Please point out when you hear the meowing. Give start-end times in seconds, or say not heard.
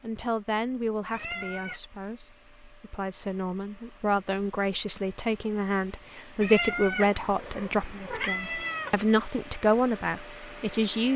1.1-1.8, 6.4-9.0.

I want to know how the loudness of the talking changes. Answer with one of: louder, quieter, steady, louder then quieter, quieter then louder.
louder.